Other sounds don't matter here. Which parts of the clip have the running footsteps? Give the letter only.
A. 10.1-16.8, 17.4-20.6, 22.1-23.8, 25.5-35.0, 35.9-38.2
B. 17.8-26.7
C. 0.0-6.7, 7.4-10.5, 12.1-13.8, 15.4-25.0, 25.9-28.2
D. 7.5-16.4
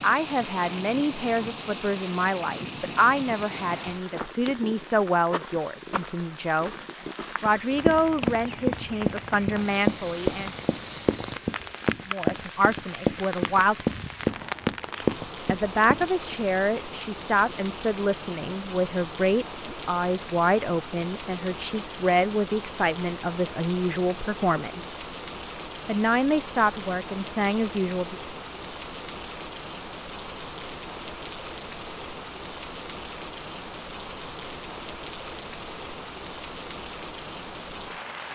D.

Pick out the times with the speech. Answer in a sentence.
You can hear the speech from 0.0 to 6.7 s, from 7.4 to 10.5 s, from 12.1 to 13.8 s, from 15.4 to 25.0 s and from 25.9 to 28.2 s.